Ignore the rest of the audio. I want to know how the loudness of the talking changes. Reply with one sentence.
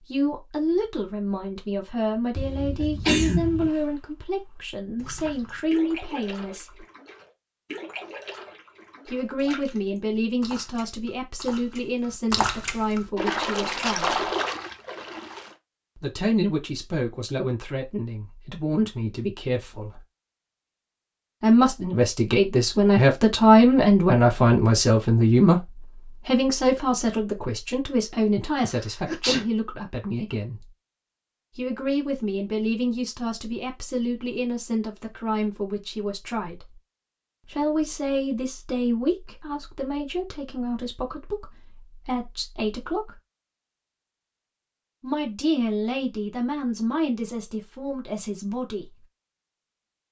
The loudness of the talking goes up, then down.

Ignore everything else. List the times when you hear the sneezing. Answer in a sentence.
You can hear the sneezing from 2.4 to 3.7 s and from 28.6 to 29.4 s.